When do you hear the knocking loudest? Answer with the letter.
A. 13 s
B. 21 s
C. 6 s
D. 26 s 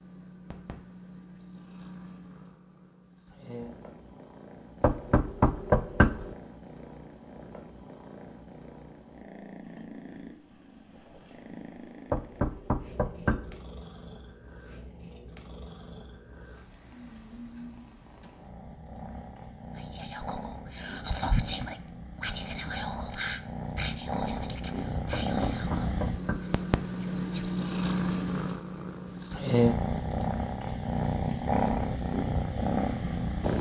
C.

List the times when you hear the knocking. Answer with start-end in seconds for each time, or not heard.
4.8-6.3, 12.1-13.6, 25.1-26.6.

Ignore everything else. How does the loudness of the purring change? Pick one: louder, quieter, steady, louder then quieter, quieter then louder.
louder.